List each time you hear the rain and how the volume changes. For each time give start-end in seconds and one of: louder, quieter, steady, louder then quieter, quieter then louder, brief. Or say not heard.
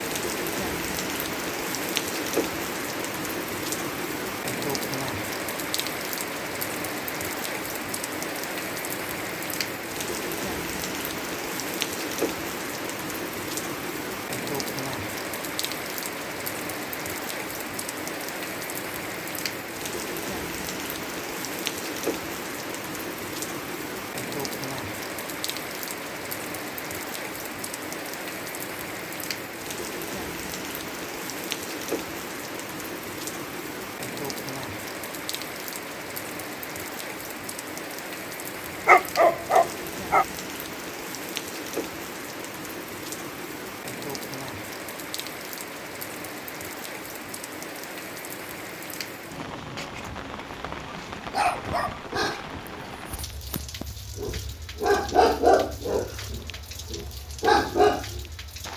0.0-58.7 quieter.